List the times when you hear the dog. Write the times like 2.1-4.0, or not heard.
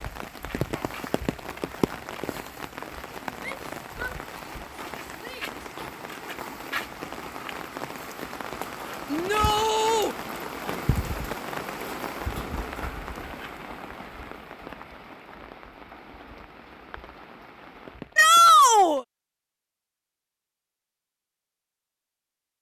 not heard.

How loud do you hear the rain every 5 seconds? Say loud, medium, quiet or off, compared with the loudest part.
loud, loud, loud, medium, off.